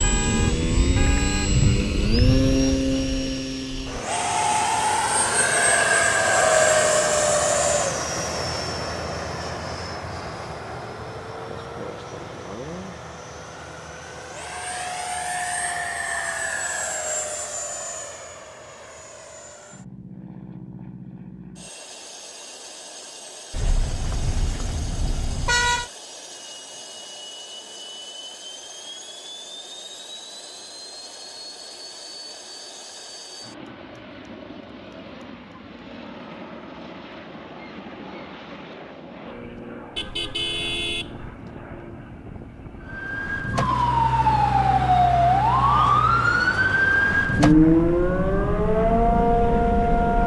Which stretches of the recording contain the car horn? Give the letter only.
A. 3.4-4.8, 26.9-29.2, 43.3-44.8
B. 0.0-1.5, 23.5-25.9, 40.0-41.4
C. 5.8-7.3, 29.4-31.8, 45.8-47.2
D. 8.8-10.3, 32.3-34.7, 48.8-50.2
B.